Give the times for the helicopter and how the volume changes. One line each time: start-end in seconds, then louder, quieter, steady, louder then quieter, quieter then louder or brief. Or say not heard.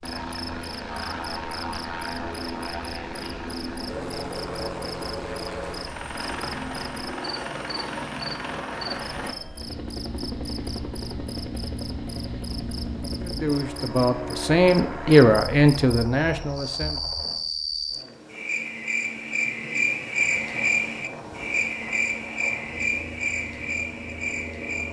0.0-17.4 steady
20.2-24.8 steady.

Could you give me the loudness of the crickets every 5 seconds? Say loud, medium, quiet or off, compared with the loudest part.
quiet, quiet, quiet, loud, loud.